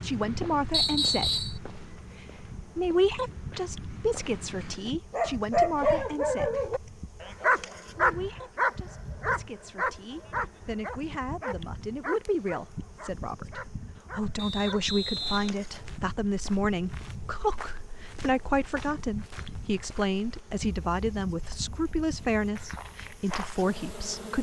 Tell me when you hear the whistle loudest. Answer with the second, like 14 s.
1 s.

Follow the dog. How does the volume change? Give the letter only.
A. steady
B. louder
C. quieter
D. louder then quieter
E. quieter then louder
C.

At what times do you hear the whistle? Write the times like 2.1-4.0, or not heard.
0.7-1.6, 14.3-15.6.